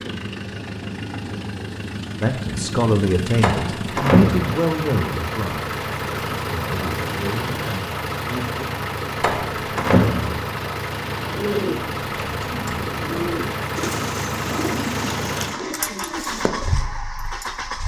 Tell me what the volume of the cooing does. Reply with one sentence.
The volume of the cooing stays about the same.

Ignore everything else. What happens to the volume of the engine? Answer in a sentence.
The volume of the engine stays about the same.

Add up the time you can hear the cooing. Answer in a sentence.
The cooing can be heard for 6 seconds in total.